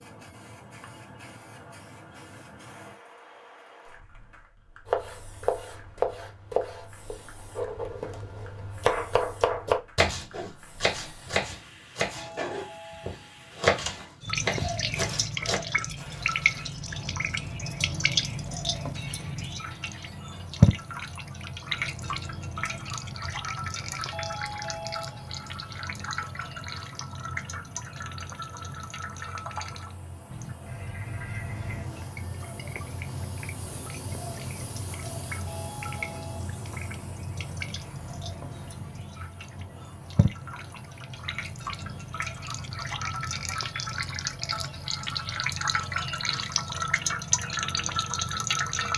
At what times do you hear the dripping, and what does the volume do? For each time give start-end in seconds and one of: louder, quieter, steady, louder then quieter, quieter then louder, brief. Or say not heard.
14.2-48.9 quieter then louder.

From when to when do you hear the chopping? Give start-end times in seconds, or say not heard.
4.8-15.6.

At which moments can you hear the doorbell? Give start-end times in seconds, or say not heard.
12.2-13.5, 24.1-25.4, 35.5-36.5.